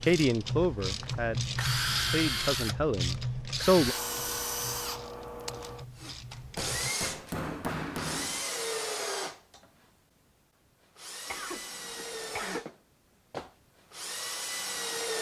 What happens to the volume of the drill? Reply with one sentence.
The loudness of the drill goes down.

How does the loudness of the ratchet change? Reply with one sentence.
The volume of the ratchet goes down.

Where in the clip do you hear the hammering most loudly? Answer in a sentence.
The volume of the hammering peaks at 8 seconds.